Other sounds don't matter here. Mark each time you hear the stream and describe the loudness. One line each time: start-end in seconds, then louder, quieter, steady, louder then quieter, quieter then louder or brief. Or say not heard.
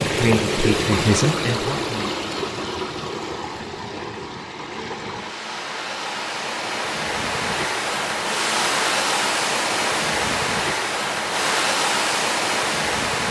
0.0-13.2 quieter then louder.